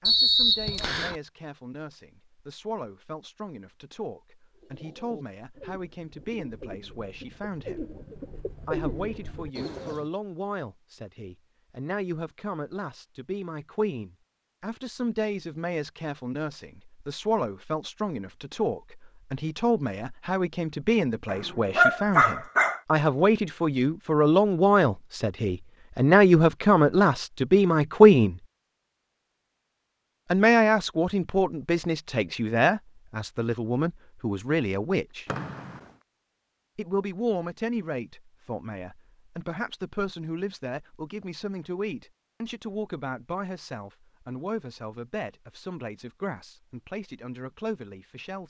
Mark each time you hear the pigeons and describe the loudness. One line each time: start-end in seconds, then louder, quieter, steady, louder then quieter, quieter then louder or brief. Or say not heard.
4.5-10.1 louder.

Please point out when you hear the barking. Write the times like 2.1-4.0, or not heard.
21.2-22.8.